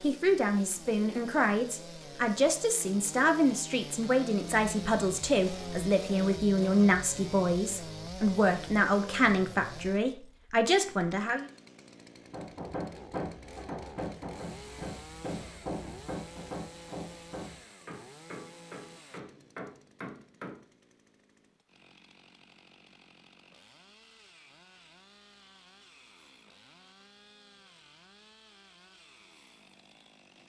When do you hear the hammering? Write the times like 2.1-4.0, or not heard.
12.3-20.6.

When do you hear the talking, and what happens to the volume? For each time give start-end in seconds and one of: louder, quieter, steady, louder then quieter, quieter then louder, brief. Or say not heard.
0.0-11.4 steady.